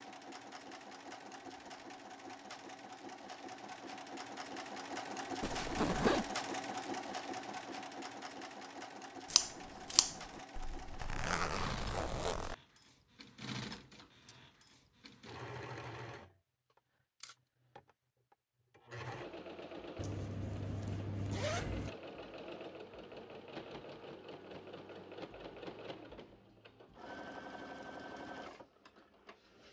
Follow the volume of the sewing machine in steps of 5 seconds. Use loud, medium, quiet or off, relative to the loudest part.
medium, loud, medium, medium, medium, medium.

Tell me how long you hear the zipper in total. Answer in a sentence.
You can hear the zipper for 5 seconds altogether.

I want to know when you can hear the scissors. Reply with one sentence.
The scissors can be heard from 9.3 to 10.2 s.